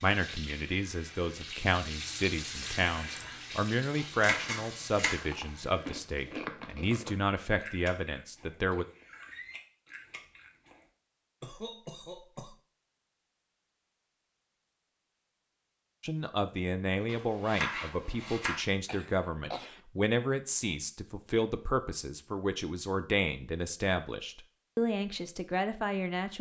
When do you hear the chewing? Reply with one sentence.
The chewing can be heard from 5.2 to 10.8 s.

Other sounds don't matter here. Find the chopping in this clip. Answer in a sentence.
You can hear the chopping from 4.2 to 5.2 s and from 17.1 to 18.6 s.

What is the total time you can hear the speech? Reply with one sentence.
You can hear the speech for 19 seconds altogether.